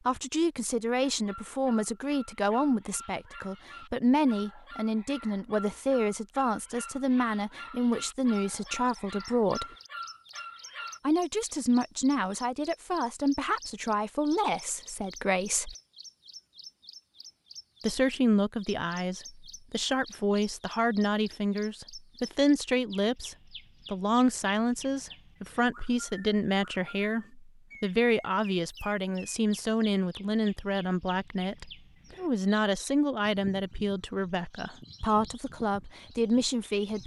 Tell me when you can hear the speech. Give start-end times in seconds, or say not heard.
0.1-9.7, 11.1-15.8, 17.8-37.0.